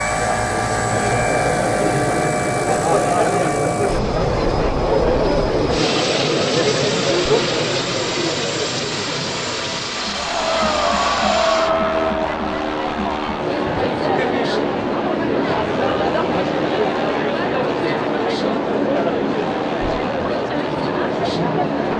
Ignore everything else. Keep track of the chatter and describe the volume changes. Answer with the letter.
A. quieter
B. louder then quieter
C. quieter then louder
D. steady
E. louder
D.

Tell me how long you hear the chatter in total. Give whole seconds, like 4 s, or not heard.
22 s.